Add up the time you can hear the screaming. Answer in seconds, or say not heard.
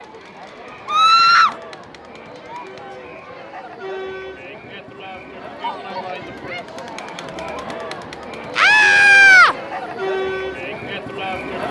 2 s.